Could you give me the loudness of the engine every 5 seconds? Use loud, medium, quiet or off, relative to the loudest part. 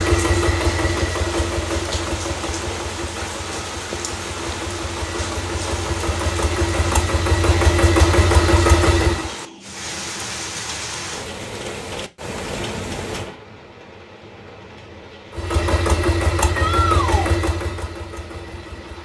medium, loud, off, loud.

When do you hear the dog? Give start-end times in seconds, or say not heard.
not heard.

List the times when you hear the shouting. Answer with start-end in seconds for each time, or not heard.
16.5-17.3.